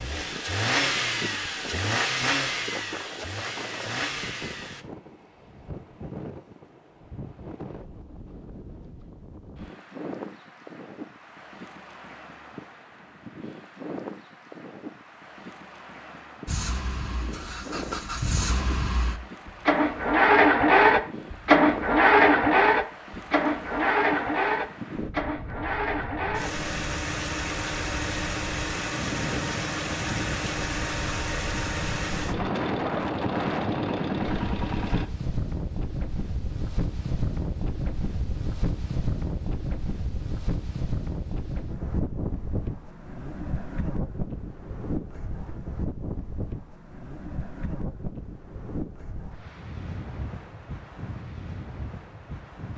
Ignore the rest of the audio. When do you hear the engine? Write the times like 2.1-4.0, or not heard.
0.0-4.8, 16.4-35.1.